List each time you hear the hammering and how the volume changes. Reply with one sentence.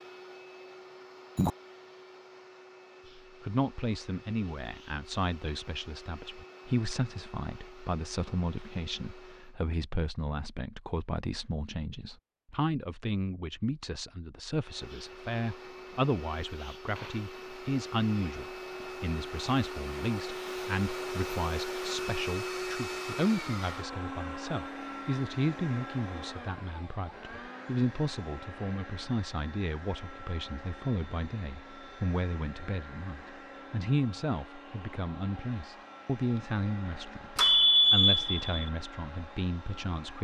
You can't hear the hammering here.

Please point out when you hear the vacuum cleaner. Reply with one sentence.
You can hear the vacuum cleaner from 0.0 to 9.6 s and from 14.6 to 40.1 s.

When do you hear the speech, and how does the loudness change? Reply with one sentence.
The speech can be heard from 3.1 to 40.1 s, at a steady volume.